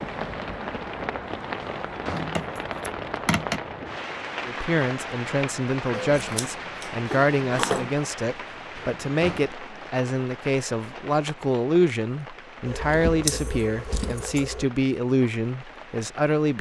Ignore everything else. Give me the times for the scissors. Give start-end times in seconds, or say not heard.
2.1-3.6, 5.9-8.0, 12.7-14.7.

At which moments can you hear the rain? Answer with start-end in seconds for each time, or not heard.
0.0-16.5.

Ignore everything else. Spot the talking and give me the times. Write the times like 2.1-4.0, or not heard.
4.5-16.5.